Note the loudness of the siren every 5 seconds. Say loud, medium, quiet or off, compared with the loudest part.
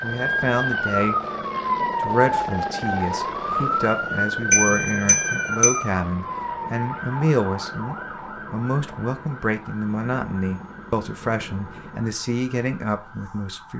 loud, medium, quiet.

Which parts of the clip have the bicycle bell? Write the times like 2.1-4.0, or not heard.
4.5-5.8.